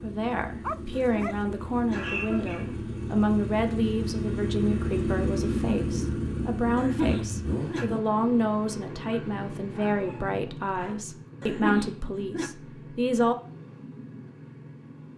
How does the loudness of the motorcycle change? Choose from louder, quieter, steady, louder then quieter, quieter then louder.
louder then quieter.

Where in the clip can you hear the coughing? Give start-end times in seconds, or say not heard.
1.1-3.0, 6.8-7.8, 11.4-12.5.